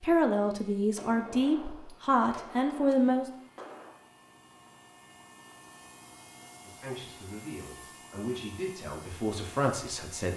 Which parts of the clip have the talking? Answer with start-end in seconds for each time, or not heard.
0.0-3.2, 6.6-10.3.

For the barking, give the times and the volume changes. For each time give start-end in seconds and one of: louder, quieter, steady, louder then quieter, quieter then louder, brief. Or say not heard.
not heard.